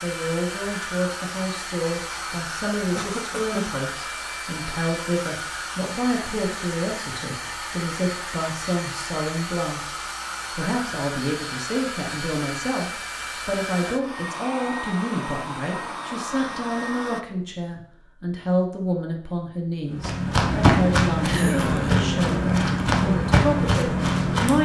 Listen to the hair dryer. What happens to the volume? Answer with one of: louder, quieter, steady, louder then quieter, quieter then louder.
steady.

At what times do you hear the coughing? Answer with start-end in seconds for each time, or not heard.
3.0-3.6, 21.2-22.1.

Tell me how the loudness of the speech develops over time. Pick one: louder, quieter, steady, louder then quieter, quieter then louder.
steady.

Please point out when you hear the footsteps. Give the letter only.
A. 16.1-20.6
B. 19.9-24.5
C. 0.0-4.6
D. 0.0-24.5
B.